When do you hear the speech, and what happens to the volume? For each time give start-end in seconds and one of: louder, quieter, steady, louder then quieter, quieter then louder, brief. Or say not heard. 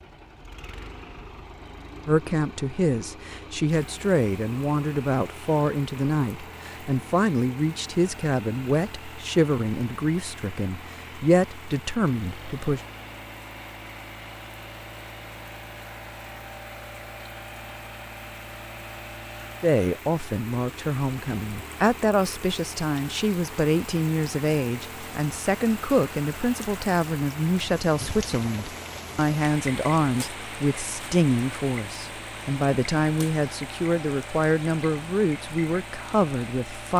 2.0-12.8 steady
19.6-36.9 steady.